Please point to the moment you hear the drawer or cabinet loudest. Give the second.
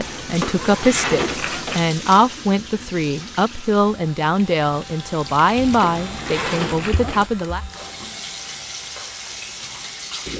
1 s.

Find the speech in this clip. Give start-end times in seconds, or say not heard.
0.0-7.6.